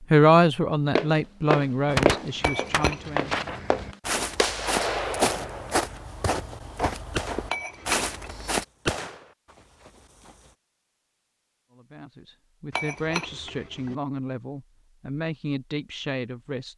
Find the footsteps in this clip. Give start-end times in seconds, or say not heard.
0.9-8.7.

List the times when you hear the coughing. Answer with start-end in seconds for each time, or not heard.
not heard.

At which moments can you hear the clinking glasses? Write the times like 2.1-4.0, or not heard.
2.4-3.2, 7.5-8.3, 12.7-13.9.